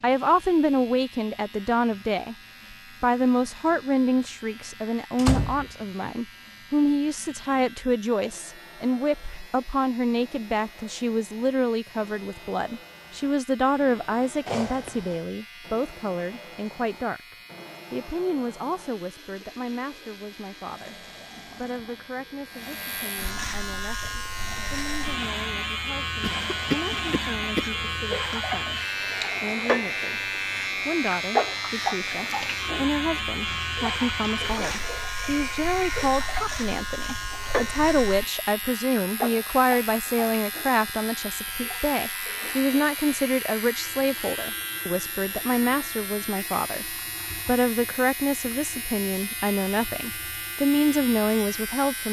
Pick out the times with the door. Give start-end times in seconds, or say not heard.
5.2-6.1.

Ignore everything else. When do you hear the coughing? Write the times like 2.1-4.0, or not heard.
14.4-15.2, 26.2-27.8.